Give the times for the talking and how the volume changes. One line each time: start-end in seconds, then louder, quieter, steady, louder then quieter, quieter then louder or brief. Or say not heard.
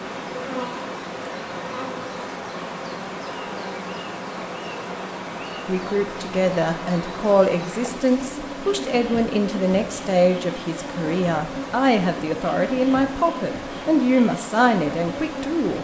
5.7-15.7 steady.